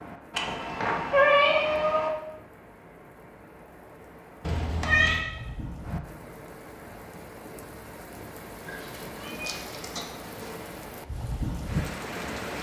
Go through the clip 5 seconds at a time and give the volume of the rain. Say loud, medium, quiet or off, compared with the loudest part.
quiet, medium, loud.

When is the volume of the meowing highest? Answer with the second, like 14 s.
1 s.